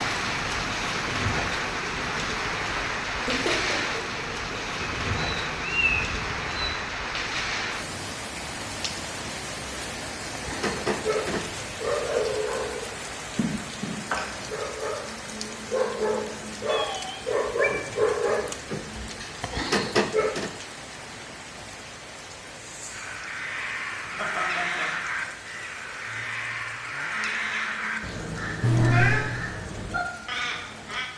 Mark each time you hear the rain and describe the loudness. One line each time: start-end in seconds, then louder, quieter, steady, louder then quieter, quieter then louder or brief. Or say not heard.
0.0-31.1 quieter.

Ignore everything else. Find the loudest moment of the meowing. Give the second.
29 s.